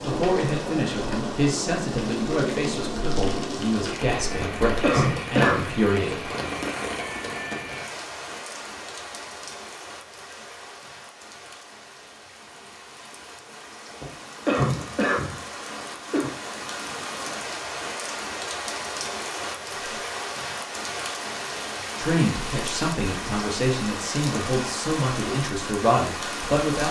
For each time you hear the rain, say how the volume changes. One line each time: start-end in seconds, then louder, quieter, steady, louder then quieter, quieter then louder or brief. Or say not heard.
0.0-26.8 quieter then louder.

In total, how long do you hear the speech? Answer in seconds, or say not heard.
11 s.